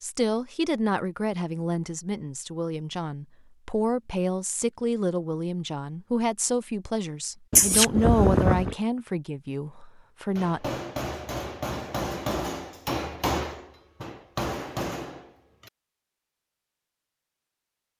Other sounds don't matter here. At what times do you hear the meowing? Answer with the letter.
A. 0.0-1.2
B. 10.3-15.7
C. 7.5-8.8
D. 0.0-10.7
C.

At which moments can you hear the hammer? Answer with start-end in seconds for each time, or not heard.
10.3-15.7.